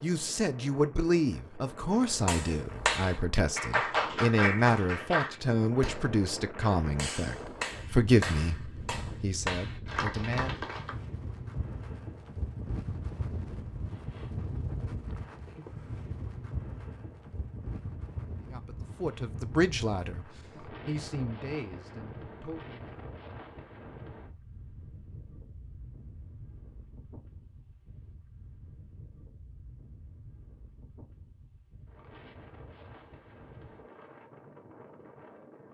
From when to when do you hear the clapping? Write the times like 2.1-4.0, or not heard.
2.1-10.9.